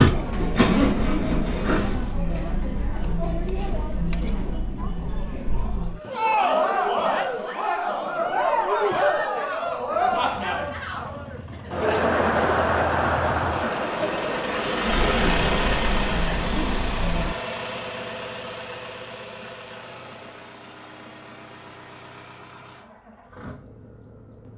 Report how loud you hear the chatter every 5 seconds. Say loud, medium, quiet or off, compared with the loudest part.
medium, loud, loud, medium, off.